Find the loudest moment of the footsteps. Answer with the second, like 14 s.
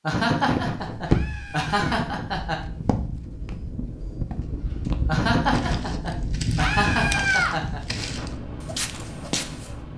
1 s.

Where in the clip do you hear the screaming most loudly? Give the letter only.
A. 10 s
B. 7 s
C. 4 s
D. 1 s
B.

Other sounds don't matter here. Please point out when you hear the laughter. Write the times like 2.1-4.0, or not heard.
0.0-2.6, 5.0-7.8.